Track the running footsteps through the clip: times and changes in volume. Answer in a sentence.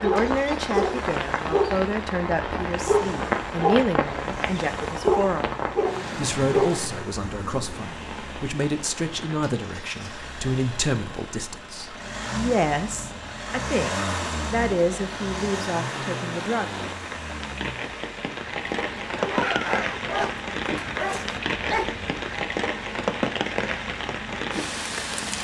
You can't hear the running footsteps here.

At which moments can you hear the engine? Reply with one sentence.
The engine can be heard from 0.0 to 25.3 s.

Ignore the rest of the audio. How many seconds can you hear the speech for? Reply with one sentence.
The speech can be heard for 17 seconds in total.